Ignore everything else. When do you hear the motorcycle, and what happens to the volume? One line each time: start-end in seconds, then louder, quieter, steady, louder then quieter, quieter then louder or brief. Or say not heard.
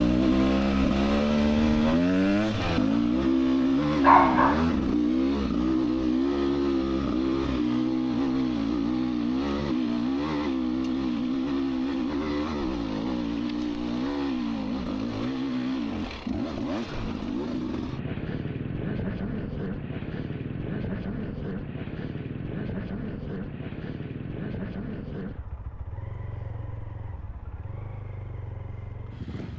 0.0-29.5 quieter.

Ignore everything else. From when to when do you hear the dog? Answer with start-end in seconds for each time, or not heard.
4.0-4.7.